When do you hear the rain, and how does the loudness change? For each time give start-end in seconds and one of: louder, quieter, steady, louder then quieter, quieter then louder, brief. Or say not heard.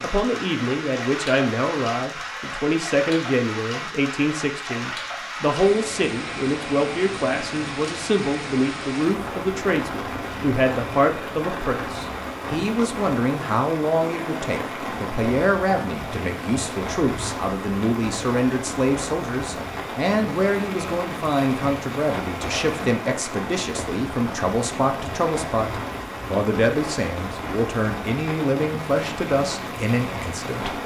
0.0-30.8 steady.